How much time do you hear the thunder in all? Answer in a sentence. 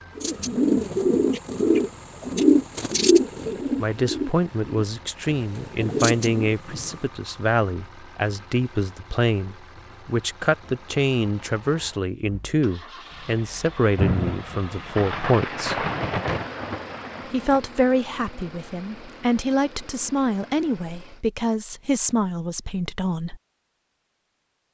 The thunder can be heard for 5 seconds in total.